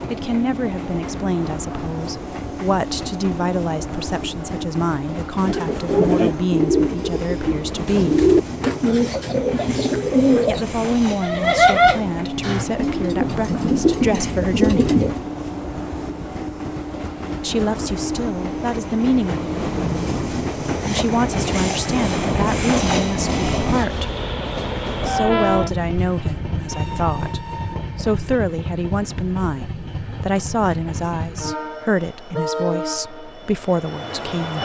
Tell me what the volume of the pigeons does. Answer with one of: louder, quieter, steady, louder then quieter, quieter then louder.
steady.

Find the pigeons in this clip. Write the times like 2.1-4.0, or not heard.
5.4-15.2.